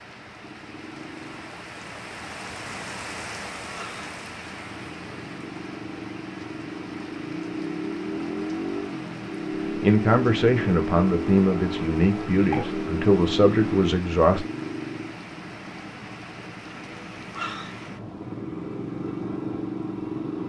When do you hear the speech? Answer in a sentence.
You can hear the speech from 9.8 to 14.4 s.